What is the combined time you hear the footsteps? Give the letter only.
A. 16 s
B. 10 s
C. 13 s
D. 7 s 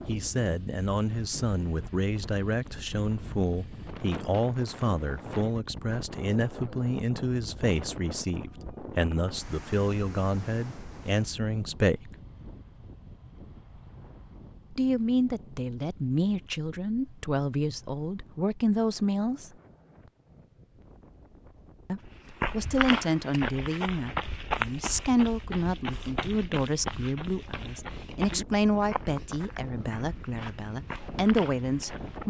B.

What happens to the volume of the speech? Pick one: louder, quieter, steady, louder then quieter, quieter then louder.
steady.